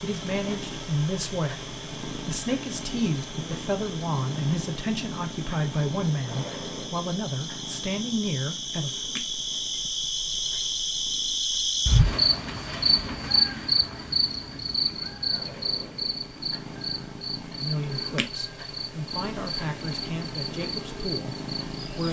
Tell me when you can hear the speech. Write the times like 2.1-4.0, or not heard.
0.0-9.1, 17.6-22.0.